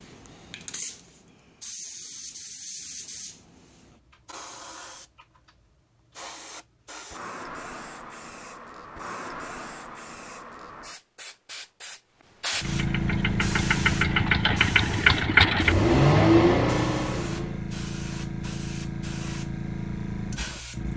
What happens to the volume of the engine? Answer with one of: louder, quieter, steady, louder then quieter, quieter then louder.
louder.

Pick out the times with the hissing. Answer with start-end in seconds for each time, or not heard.
0.0-20.9.